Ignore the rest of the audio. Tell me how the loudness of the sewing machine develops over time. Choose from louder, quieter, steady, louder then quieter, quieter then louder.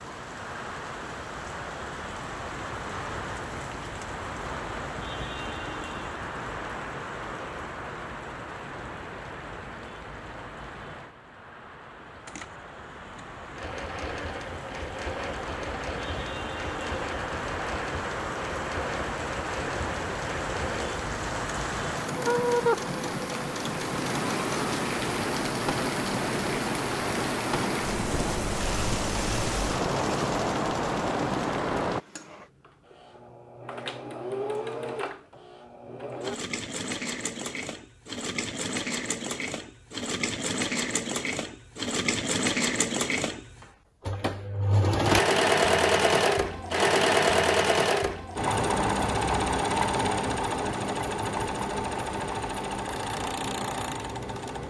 louder.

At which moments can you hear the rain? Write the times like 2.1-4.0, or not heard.
0.0-32.0.